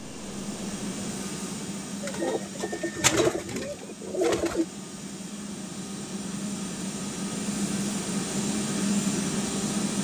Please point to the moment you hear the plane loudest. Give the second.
9 s.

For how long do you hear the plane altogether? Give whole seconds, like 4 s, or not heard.
10 s.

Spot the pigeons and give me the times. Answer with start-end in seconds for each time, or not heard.
2.0-4.7.